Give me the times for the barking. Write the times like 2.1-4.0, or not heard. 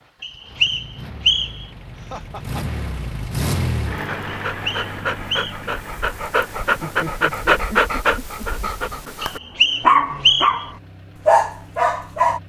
4.0-12.4.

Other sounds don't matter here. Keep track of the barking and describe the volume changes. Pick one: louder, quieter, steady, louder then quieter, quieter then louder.
louder.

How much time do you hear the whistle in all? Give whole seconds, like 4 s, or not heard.
4 s.